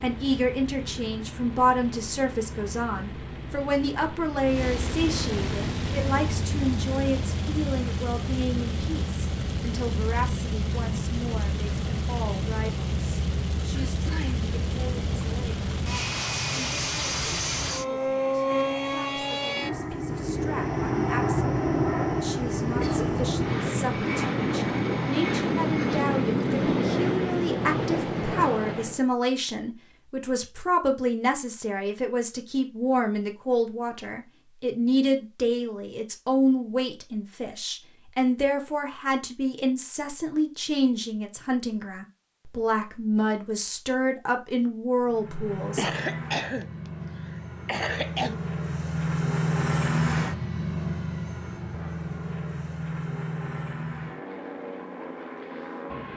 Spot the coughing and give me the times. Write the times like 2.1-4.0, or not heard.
13.8-14.3, 22.7-23.2, 45.8-48.4.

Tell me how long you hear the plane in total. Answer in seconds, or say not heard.
40 s.